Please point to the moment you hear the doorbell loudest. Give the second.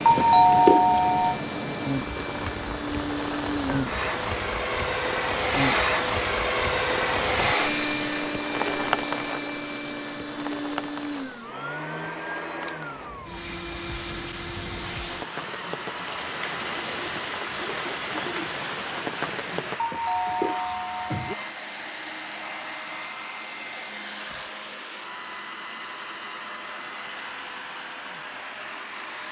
1 s.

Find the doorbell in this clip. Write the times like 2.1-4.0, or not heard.
0.1-1.4, 19.8-21.4.